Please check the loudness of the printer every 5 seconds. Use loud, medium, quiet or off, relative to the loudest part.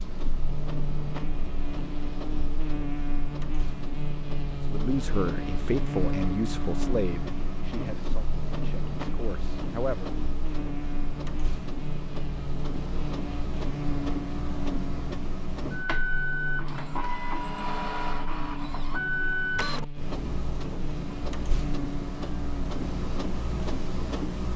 medium, medium, medium, loud, loud.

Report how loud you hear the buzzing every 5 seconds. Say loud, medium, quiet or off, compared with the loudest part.
loud, loud, loud, medium, loud.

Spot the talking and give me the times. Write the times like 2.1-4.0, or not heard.
4.7-10.1.